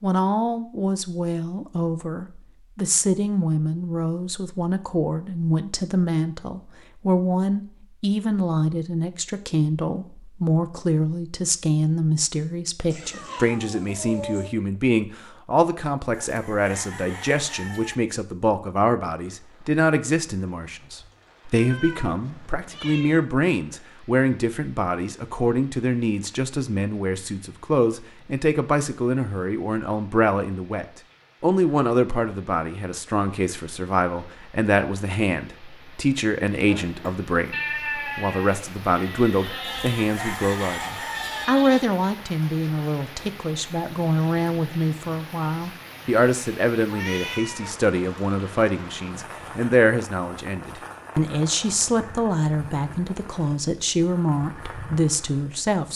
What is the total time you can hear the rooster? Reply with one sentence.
The rooster can be heard for 4 seconds in total.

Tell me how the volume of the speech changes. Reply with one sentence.
The loudness of the speech stays about the same.